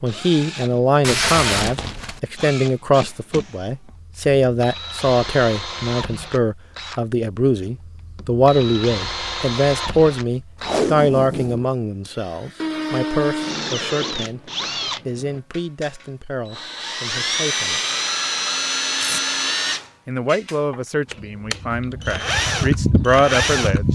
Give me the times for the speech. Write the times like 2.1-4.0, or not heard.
0.0-17.8, 20.1-23.9.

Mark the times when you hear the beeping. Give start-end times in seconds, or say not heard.
not heard.